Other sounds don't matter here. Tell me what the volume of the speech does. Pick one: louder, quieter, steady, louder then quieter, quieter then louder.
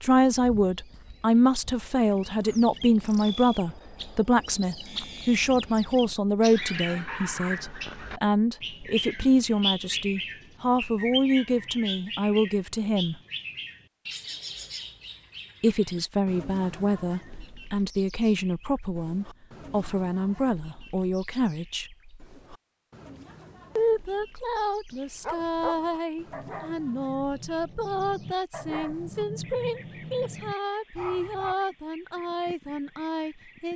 quieter.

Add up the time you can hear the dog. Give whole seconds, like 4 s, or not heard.
7 s.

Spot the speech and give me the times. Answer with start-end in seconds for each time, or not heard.
0.0-13.2, 15.6-21.9, 23.8-33.7.